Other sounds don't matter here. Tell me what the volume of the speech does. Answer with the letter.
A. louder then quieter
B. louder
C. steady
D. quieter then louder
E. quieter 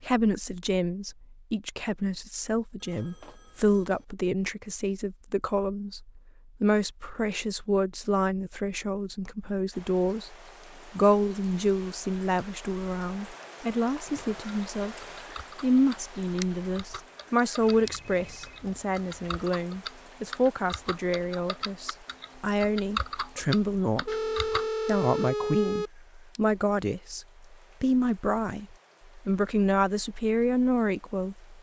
C.